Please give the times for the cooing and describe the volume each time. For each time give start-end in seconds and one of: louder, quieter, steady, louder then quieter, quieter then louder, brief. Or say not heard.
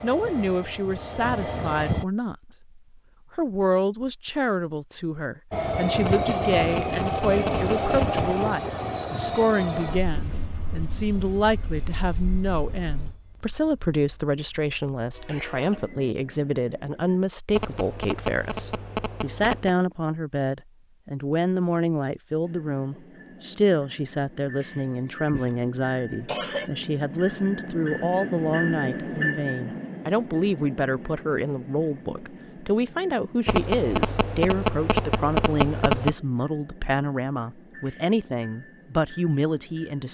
not heard.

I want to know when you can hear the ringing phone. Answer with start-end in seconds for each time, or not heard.
6.0-8.4, 17.5-19.8, 33.5-36.1.